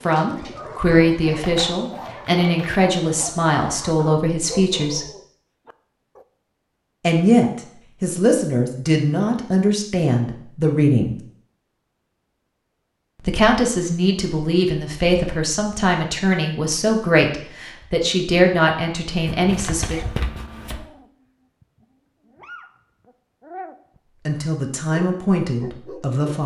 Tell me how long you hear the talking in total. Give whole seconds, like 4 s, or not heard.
18 s.